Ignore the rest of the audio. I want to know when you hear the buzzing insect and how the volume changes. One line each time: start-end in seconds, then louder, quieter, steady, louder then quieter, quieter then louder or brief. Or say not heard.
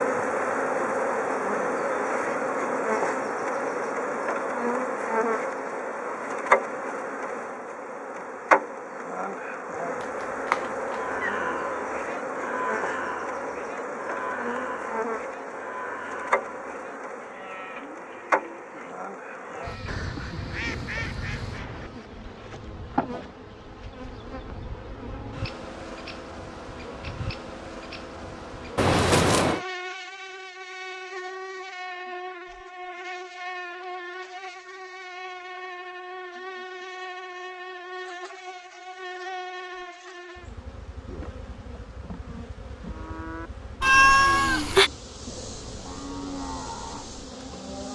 0.0-47.8 quieter.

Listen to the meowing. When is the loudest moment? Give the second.
44 s.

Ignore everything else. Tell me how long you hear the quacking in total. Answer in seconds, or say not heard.
2 s.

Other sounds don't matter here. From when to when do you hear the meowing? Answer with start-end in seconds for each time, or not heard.
10.2-11.3, 28.8-29.6, 43.8-44.9.